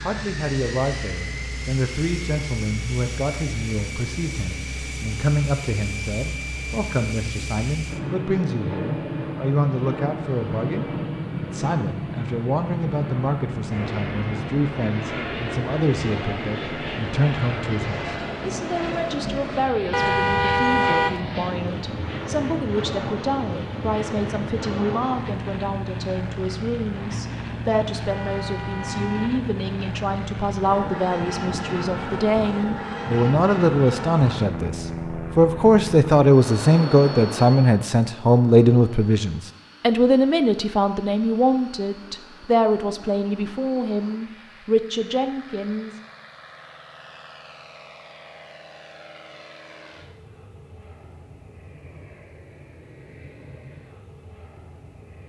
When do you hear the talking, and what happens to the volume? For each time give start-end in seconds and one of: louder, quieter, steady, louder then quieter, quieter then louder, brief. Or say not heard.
0.0-46.0 louder.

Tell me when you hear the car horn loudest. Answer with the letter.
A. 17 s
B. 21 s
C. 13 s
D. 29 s
B.